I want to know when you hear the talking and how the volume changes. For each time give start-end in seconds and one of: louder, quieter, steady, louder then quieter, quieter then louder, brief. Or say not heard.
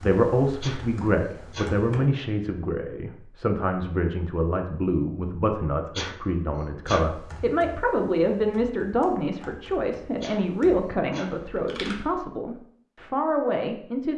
0.0-14.1 steady.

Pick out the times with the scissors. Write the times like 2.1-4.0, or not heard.
not heard.